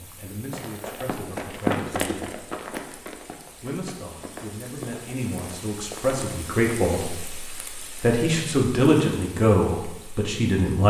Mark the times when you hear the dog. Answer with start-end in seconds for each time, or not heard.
not heard.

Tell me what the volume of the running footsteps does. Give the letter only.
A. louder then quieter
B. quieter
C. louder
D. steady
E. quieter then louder
A.